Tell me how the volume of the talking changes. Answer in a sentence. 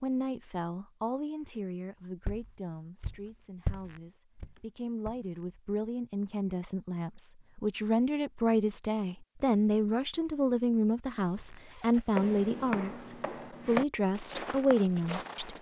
The loudness of the talking goes up.